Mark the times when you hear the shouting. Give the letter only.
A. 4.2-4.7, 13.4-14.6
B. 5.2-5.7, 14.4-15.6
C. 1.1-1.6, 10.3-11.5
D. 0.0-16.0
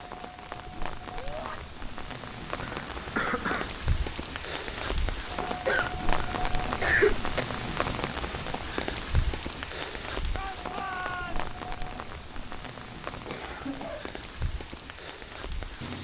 C.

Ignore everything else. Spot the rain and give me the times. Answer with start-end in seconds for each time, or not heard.
0.0-16.0.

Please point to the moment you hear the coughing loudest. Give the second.
7 s.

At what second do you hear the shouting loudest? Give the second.
11 s.